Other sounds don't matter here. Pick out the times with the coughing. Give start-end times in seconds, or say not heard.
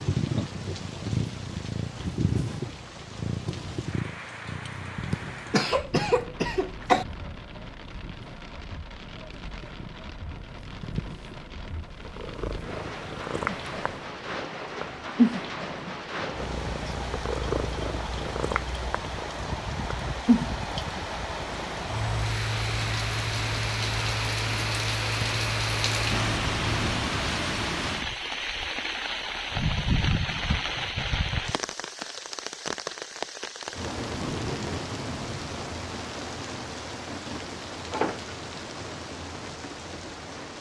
5.1-7.0.